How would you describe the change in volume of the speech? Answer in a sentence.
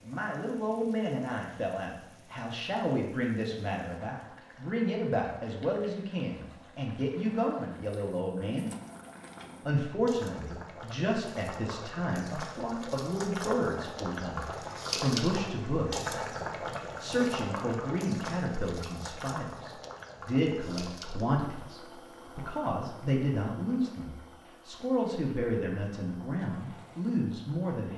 The volume of the speech stays about the same.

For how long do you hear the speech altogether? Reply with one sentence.
You can hear the speech for 26 seconds altogether.